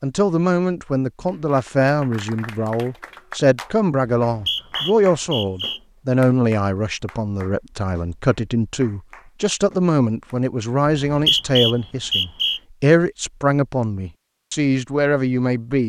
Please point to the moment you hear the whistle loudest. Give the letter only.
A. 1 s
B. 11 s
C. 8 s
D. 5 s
B.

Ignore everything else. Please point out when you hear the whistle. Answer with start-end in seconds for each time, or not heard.
4.2-5.8, 10.8-12.6.